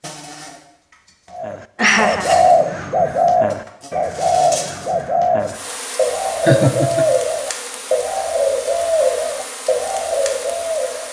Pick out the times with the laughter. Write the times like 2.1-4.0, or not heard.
1.8-2.5, 6.5-7.0.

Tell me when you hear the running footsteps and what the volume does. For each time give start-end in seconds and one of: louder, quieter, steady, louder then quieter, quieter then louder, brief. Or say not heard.
not heard.